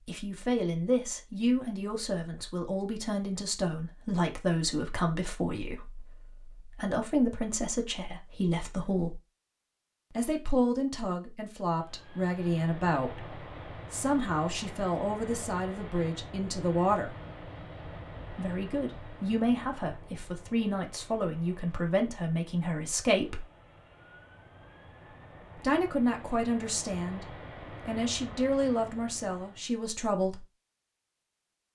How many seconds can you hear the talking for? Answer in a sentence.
The talking can be heard for 26 seconds in total.